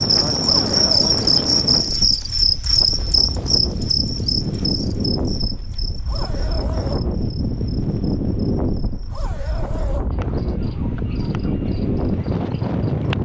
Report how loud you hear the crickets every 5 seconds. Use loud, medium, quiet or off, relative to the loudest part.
loud, quiet, quiet.